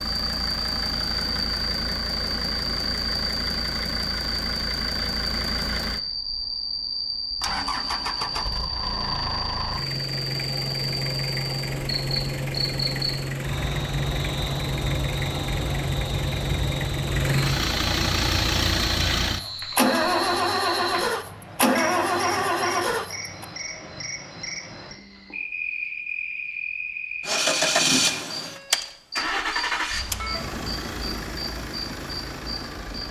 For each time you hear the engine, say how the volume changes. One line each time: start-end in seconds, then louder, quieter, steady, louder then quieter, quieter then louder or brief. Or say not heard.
0.0-23.4 louder
27.2-33.0 quieter.